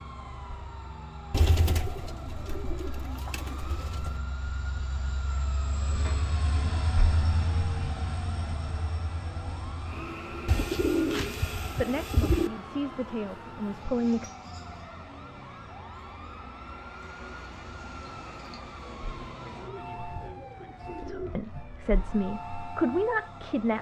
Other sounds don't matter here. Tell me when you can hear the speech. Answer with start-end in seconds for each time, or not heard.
11.8-14.2, 20.9-23.7.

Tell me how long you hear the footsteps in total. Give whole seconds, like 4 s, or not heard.
not heard.